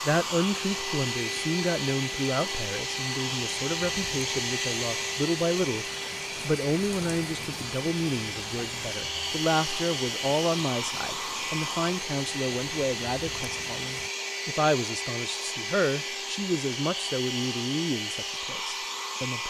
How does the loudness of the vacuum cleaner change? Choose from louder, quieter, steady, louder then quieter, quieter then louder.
steady.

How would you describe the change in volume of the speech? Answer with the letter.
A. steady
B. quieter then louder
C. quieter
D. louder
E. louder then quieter
A.